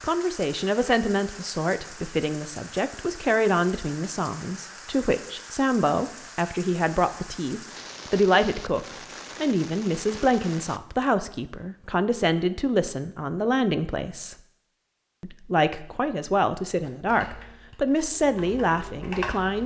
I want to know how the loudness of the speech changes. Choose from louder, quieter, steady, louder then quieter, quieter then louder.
steady.